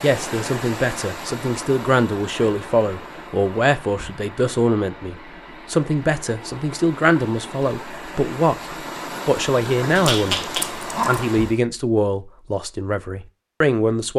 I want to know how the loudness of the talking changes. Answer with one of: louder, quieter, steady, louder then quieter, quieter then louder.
steady.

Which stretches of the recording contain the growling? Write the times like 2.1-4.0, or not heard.
9.9-11.2.